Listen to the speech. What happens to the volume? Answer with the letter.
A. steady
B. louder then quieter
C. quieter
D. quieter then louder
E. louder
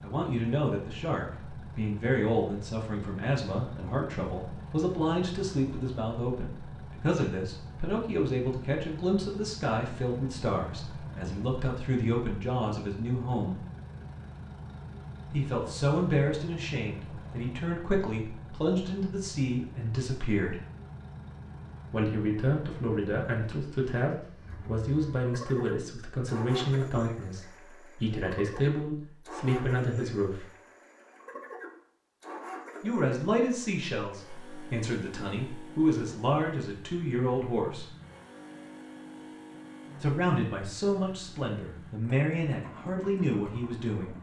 A.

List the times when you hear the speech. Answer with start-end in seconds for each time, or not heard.
0.0-13.6, 15.3-20.6, 21.9-30.5, 32.8-37.9, 40.0-44.1.